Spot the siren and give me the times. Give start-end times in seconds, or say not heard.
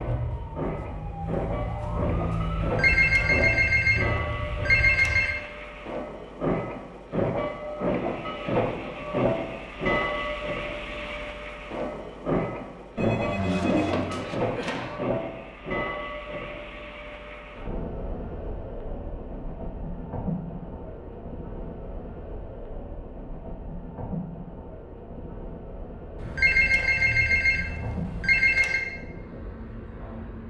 0.0-5.2.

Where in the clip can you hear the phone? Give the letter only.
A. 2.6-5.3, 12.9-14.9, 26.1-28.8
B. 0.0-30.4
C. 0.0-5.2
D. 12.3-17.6
A.